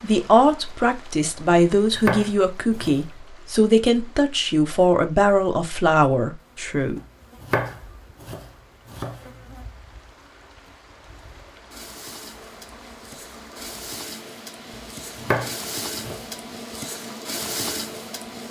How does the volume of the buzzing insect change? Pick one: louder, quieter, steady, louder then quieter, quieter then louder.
louder.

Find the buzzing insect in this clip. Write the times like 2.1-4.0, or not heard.
6.3-18.4.